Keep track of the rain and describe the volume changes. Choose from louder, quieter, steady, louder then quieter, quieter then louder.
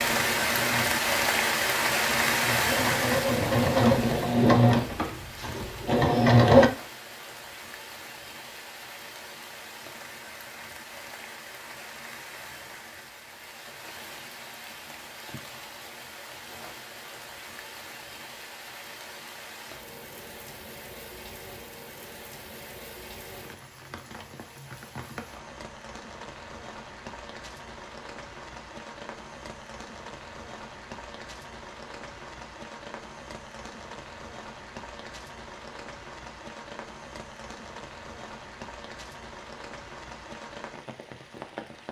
quieter.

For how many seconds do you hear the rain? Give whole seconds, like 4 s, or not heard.
42 s.